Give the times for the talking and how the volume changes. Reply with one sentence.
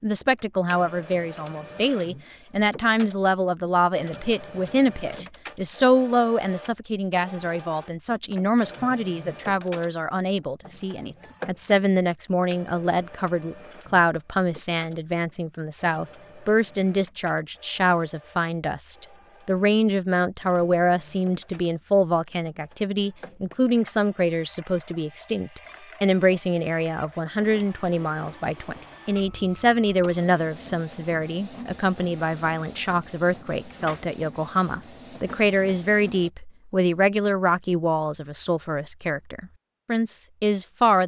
The talking can be heard from 0.0 to 41.0 s, at a steady volume.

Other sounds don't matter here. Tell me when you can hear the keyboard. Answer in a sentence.
You can't hear the keyboard here.